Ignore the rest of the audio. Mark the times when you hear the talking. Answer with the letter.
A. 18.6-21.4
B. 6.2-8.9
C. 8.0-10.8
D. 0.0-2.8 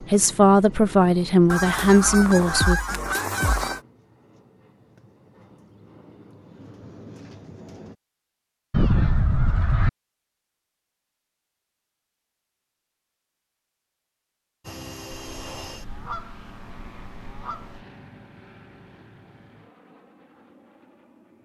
D.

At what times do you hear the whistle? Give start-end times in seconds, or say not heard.
not heard.